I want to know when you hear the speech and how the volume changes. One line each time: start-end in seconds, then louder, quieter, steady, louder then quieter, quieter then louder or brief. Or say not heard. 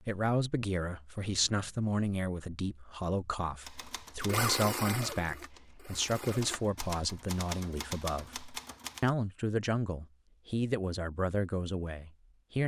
0.0-12.6 steady.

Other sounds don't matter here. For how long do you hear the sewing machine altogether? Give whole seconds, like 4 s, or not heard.
2 s.